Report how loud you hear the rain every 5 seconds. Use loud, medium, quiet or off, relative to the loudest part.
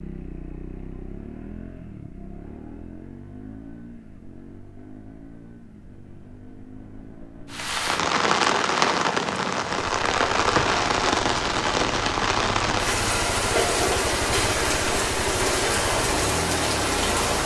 off, loud, loud, loud.